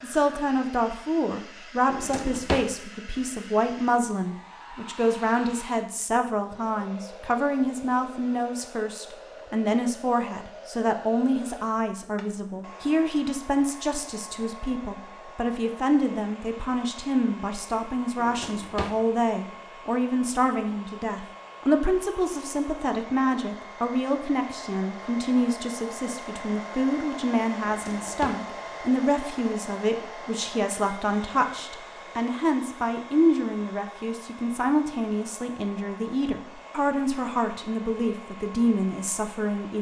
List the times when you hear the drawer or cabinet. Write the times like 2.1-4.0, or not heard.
1.9-2.7, 18.1-19.0, 27.6-28.4.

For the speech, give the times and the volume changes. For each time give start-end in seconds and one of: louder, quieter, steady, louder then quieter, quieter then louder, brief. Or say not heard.
0.0-39.7 steady.